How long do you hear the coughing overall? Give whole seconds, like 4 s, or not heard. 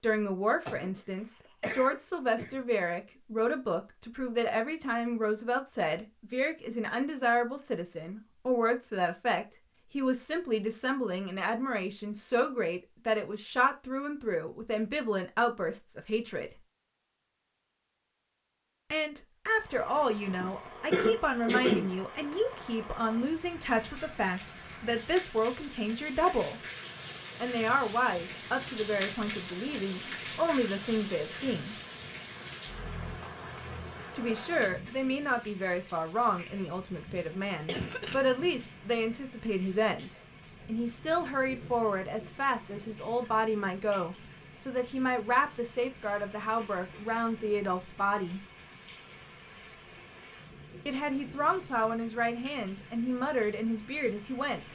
4 s.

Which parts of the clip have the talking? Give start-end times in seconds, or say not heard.
0.0-16.6, 18.9-26.6, 27.4-31.8, 34.1-48.4, 50.9-54.6.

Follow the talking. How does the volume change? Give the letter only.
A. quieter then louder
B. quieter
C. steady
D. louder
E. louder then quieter
C.